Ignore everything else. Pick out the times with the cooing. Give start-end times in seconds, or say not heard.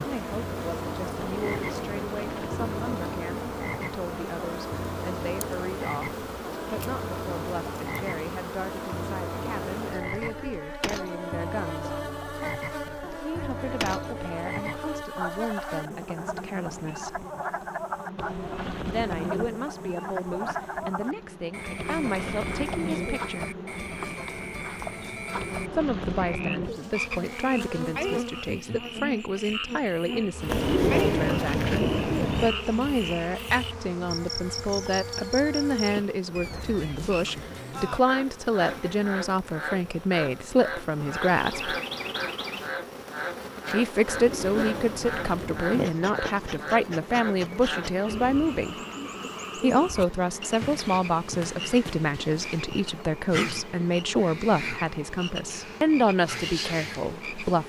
1.1-3.2, 30.4-32.5, 44.0-45.8.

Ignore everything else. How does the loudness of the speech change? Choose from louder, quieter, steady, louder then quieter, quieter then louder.
louder.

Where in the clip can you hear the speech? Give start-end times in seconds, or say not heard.
0.0-11.9, 13.2-17.2, 18.9-23.6, 25.8-41.7, 43.7-48.8, 49.5-57.6.